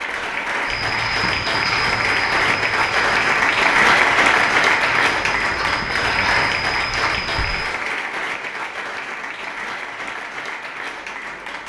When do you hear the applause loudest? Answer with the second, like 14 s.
4 s.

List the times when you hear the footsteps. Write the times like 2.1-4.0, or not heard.
0.7-7.7.